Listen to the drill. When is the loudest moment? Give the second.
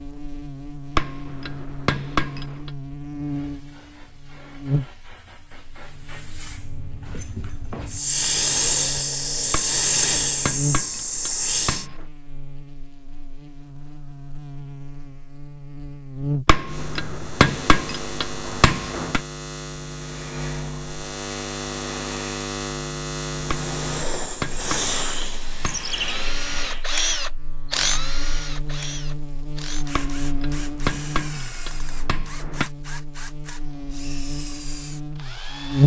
27 s.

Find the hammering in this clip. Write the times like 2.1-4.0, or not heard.
0.9-2.7, 9.5-12.1, 16.4-19.2, 23.5-26.1, 29.9-32.7.